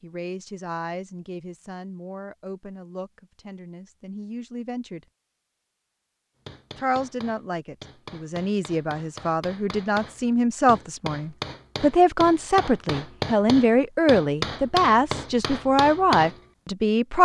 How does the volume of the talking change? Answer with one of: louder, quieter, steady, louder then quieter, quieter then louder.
louder.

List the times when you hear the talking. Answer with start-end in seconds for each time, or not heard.
0.0-5.0, 6.8-17.2.